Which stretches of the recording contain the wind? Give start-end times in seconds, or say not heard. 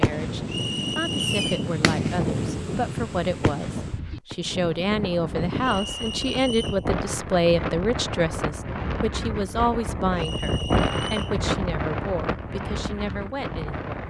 0.0-14.0.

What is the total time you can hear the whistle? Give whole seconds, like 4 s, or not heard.
4 s.